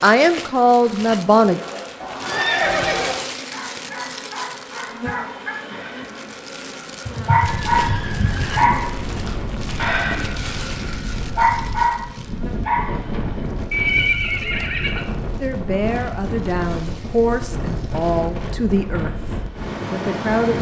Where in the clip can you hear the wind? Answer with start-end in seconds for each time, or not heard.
7.4-20.5.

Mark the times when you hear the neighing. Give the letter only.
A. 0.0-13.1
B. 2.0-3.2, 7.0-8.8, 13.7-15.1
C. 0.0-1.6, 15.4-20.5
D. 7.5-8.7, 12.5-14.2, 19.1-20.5
B.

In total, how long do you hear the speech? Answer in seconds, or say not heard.
7 s.